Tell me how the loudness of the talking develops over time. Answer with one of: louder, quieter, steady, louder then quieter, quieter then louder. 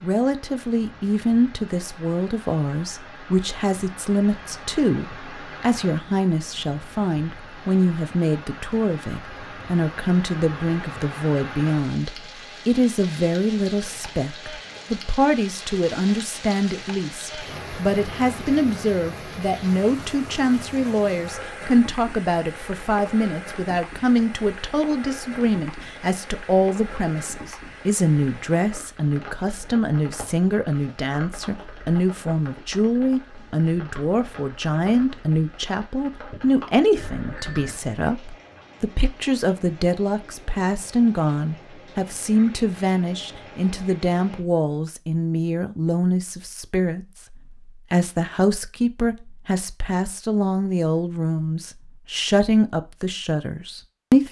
steady.